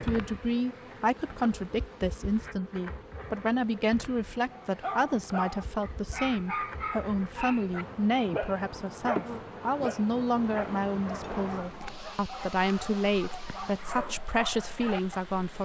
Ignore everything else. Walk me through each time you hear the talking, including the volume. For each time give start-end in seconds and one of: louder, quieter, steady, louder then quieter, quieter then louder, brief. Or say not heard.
0.0-15.6 steady.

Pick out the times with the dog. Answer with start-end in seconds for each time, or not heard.
4.5-15.2.